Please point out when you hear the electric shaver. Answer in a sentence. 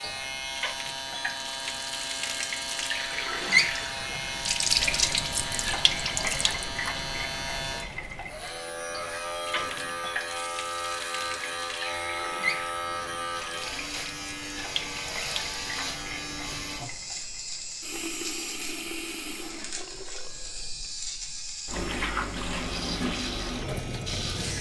The electric shaver can be heard from 0.0 to 24.5 s.